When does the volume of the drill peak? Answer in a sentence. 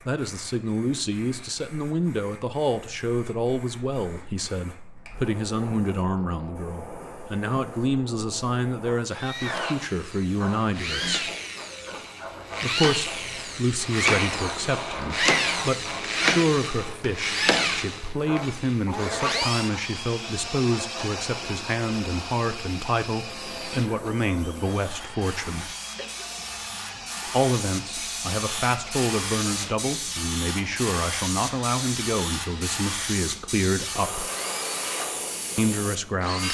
The loudest moment of the drill is at 16 seconds.